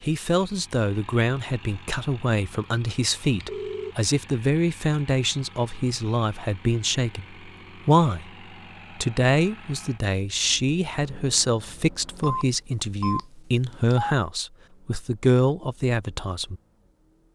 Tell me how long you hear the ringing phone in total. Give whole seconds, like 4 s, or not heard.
3 s.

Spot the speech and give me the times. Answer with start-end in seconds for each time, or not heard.
0.0-8.3, 8.9-16.6.